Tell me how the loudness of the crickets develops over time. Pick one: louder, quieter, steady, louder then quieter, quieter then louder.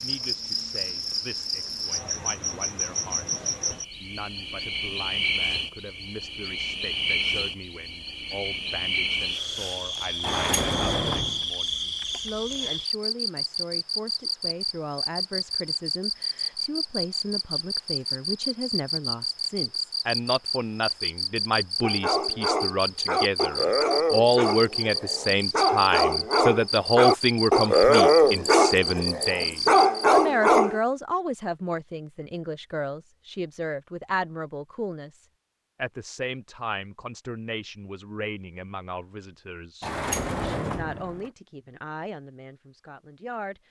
steady.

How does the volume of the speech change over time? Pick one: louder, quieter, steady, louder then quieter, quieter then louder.
louder then quieter.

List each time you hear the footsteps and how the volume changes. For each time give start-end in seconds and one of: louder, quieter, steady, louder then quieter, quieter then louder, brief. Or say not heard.
not heard.